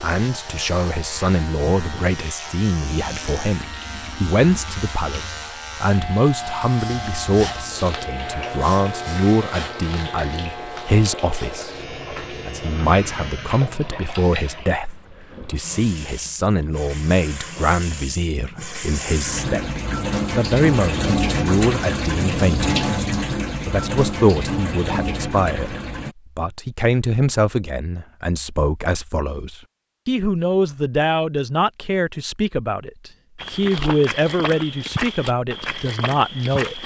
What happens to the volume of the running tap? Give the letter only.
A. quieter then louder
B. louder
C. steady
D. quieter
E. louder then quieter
B.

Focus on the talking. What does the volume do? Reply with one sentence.
The volume of the talking stays about the same.